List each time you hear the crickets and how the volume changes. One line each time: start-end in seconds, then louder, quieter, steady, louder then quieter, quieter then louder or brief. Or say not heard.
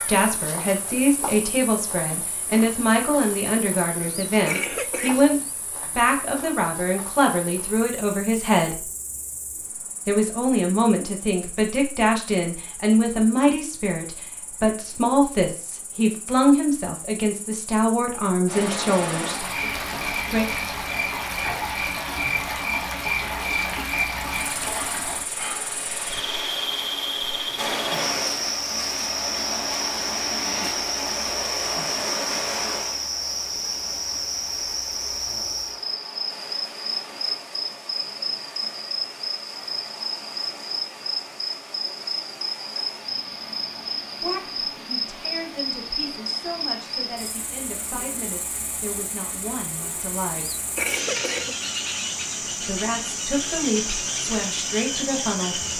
0.0-55.7 louder.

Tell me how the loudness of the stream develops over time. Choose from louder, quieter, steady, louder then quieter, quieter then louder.
quieter.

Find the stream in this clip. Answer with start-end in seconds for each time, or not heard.
18.4-55.7.